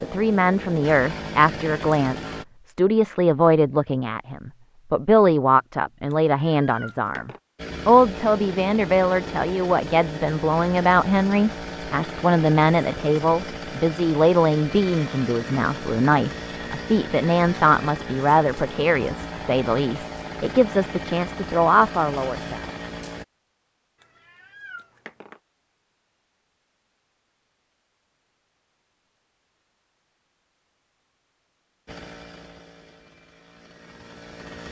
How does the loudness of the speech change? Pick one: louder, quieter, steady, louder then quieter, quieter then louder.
steady.